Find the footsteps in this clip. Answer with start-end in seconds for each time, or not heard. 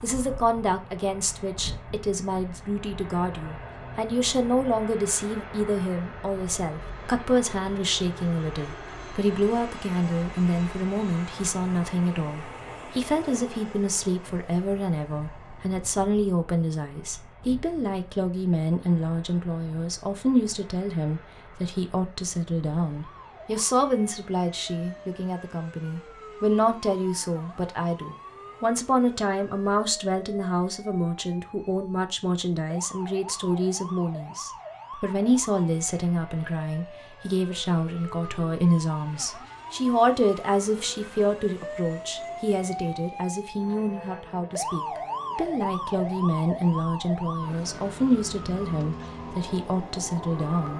not heard.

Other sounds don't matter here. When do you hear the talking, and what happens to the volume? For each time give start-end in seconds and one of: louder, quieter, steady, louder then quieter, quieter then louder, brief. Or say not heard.
0.0-50.7 steady.